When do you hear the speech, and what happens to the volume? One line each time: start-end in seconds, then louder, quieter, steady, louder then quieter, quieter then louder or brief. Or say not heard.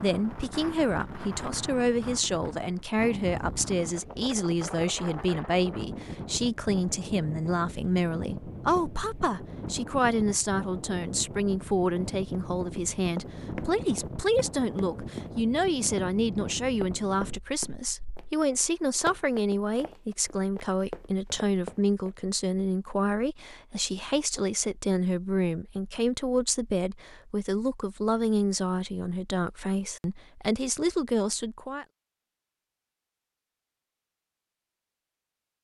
0.0-31.9 steady.